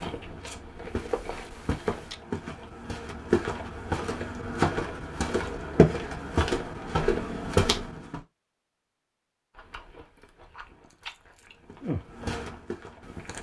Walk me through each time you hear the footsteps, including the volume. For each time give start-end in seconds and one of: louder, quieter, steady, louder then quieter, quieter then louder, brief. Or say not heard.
0.0-8.2 louder
11.7-13.3 brief.